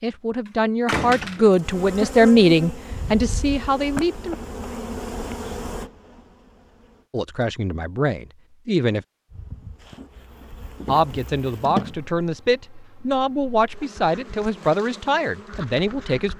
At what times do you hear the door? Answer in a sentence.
The door can be heard from 0.5 to 1.6 s.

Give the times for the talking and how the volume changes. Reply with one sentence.
The talking can be heard from 0.0 to 4.3 s, getting louder then quieter; briefly from 7.1 to 9.1 s; and from 10.8 to 16.3 s, at a steady volume.